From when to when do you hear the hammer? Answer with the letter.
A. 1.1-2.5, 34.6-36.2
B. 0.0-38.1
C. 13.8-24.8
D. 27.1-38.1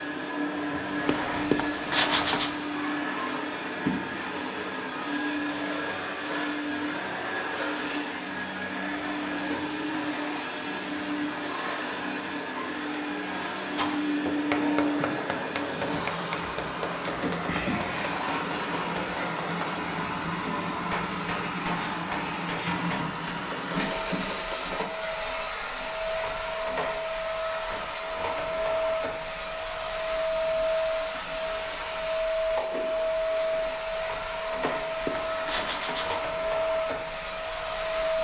C.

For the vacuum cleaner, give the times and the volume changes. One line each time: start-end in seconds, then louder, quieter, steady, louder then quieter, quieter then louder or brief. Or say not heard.
0.0-38.1 steady.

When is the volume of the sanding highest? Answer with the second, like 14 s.
2 s.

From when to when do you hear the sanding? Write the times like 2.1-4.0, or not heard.
1.1-2.5, 34.6-36.2.